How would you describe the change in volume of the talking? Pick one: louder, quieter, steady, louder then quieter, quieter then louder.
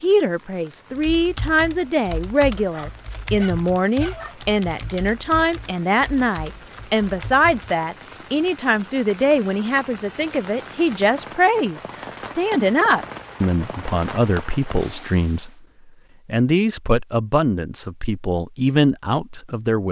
steady.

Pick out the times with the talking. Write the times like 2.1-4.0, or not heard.
0.0-15.5, 16.2-19.8.